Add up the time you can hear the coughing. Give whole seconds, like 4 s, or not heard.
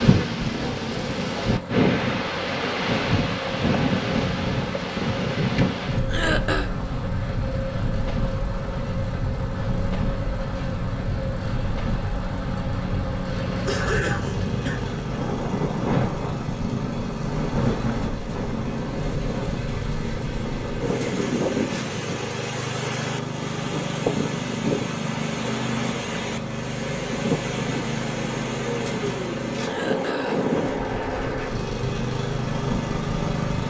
3 s.